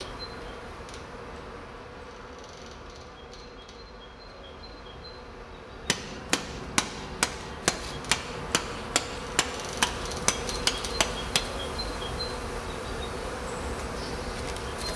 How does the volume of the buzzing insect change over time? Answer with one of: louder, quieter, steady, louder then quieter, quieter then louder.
louder.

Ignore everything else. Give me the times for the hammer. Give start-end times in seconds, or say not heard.
5.8-11.4.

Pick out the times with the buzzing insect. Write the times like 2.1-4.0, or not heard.
0.0-14.9.